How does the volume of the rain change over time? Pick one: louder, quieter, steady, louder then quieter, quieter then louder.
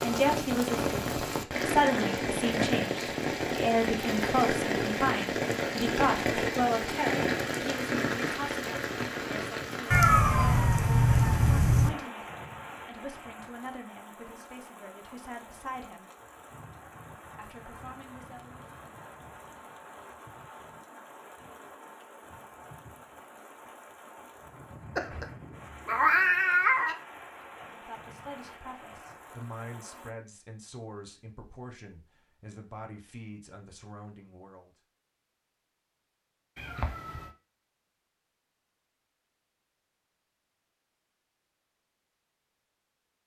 quieter.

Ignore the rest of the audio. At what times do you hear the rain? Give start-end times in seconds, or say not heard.
0.0-30.1.